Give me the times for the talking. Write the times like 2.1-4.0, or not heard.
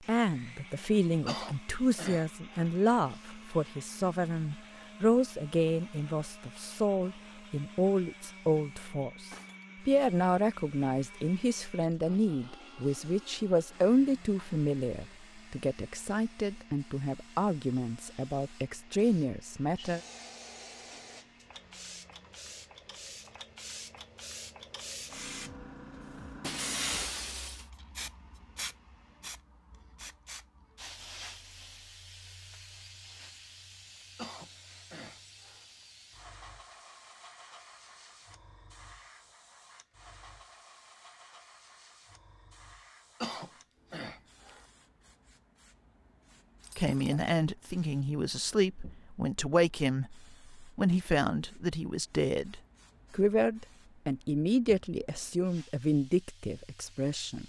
0.1-20.0, 46.8-57.4.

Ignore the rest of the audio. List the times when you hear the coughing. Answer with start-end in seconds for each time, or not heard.
1.2-2.7, 34.1-35.6, 43.2-44.6.